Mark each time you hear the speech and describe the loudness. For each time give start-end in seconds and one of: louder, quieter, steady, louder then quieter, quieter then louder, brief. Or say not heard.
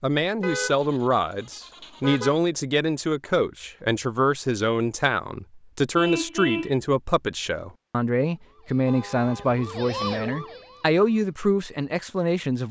0.0-12.6 steady.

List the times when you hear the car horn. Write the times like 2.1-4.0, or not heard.
0.4-2.4, 6.0-6.8, 8.8-9.6.